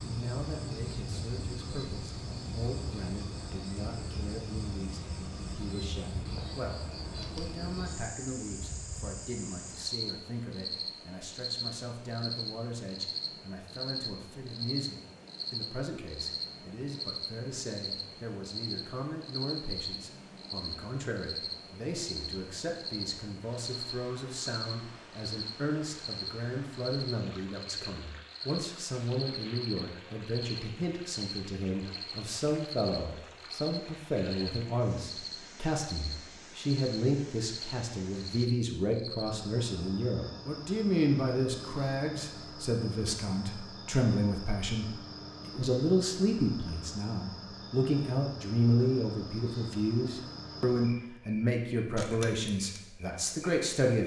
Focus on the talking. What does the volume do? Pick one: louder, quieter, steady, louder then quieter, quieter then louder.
louder.